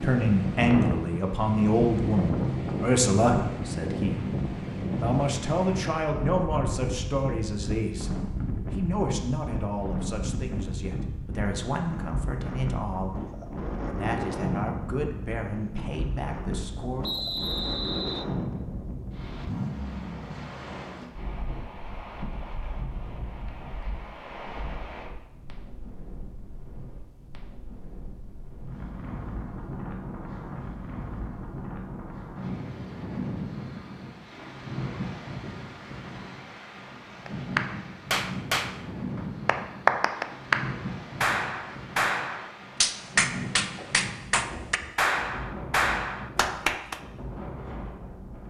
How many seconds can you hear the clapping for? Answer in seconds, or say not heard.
10 s.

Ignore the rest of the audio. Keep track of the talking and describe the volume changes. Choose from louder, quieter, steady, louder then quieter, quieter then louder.
quieter.